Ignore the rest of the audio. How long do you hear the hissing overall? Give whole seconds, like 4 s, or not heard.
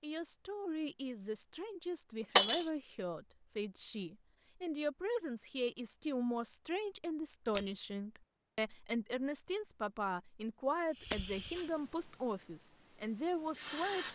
3 s.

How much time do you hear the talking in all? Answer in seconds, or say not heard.
14 s.